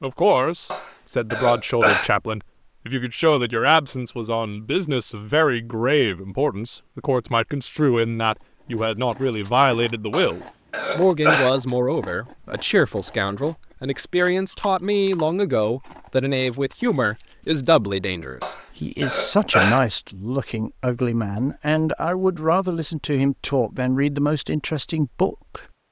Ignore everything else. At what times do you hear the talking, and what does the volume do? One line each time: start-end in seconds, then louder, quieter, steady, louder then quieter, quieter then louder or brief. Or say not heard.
0.0-25.6 steady.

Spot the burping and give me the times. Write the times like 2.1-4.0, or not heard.
0.7-2.1, 10.1-11.5, 18.4-19.8.